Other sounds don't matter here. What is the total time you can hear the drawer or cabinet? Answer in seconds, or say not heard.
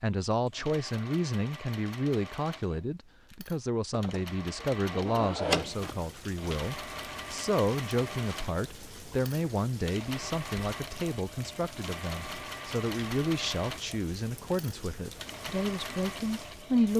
2 s.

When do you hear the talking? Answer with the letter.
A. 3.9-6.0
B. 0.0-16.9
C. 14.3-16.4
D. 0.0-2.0
B.